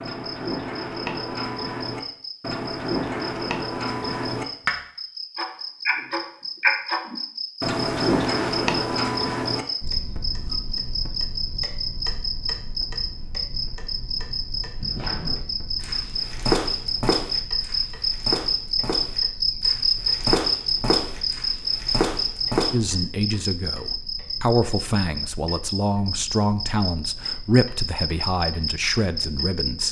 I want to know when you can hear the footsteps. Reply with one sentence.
You can hear the footsteps from 14.8 to 22.7 s.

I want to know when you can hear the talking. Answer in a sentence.
You can hear the talking from 22.7 to 29.8 s.